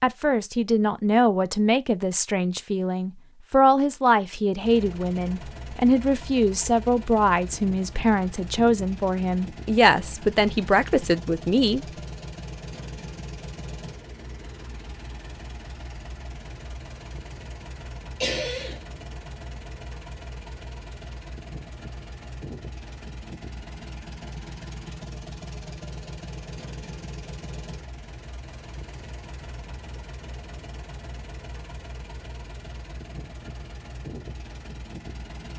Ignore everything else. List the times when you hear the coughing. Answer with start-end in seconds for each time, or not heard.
18.2-18.8.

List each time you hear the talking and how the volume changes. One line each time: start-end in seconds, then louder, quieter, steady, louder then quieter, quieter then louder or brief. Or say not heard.
0.0-11.8 steady.